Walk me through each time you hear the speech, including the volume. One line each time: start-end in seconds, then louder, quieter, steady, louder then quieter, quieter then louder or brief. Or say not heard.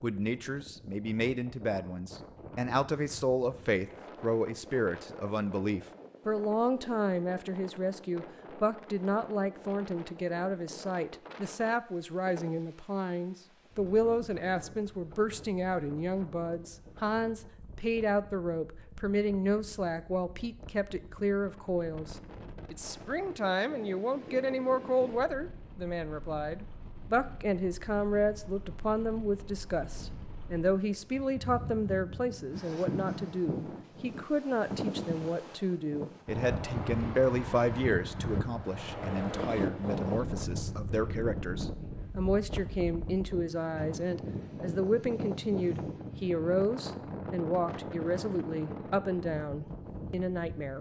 0.0-50.7 steady.